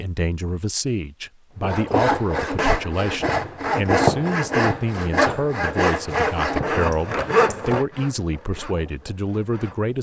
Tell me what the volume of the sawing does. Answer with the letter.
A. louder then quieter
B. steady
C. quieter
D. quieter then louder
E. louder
C.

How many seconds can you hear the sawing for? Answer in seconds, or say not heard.
8 s.